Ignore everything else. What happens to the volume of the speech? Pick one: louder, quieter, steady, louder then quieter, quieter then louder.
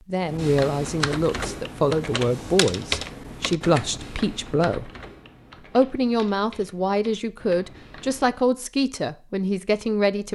steady.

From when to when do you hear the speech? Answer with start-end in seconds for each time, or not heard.
0.1-4.9, 5.8-10.2.